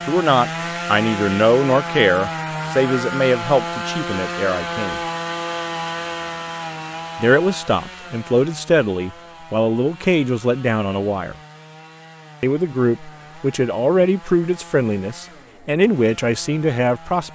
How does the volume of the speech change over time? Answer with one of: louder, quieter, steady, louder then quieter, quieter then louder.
steady.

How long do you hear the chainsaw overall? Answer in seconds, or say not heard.
17 s.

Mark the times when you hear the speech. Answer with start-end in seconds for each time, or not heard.
0.1-5.0, 7.2-11.3, 12.4-17.3.